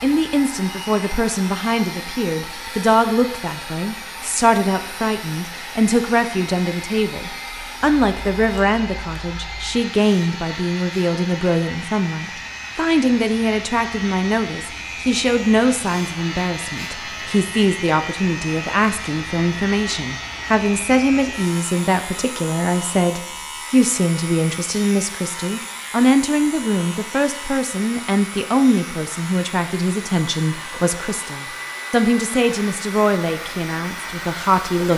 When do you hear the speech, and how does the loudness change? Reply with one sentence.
You can hear the speech from 0.0 to 34.9 s, at a steady volume.